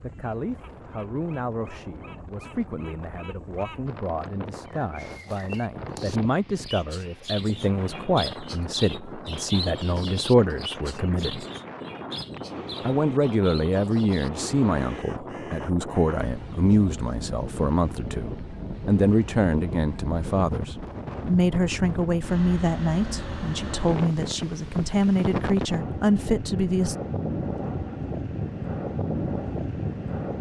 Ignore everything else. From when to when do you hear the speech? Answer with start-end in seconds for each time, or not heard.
0.0-11.4, 12.8-26.9.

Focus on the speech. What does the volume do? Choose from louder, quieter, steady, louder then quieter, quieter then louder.
louder.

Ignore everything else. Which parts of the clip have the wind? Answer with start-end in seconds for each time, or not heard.
0.0-30.3.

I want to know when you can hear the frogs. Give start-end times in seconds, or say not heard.
not heard.